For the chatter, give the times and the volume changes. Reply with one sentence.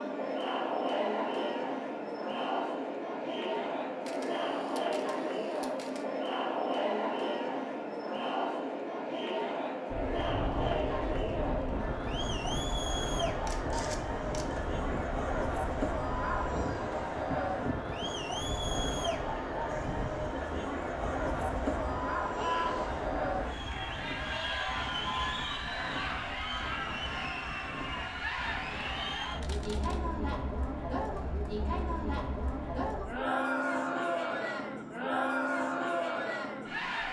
The chatter can be heard from 0.0 to 37.0 s, at a steady volume.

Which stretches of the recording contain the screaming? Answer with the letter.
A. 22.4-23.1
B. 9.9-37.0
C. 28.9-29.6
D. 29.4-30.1
A.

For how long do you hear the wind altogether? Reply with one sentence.
You can hear the wind for 27 seconds altogether.